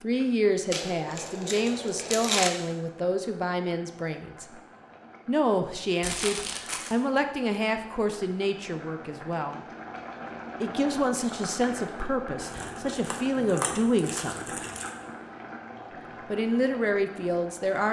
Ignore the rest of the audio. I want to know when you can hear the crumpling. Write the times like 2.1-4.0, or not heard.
0.7-2.5, 6.0-7.0, 12.4-14.9.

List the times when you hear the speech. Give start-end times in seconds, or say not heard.
0.0-4.6, 5.2-9.6, 10.6-14.6, 16.3-17.8.